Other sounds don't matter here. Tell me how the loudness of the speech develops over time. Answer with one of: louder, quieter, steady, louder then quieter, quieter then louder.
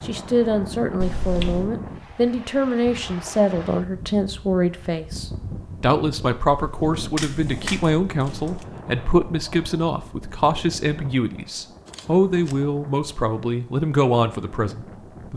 steady.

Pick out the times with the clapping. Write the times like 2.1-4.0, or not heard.
not heard.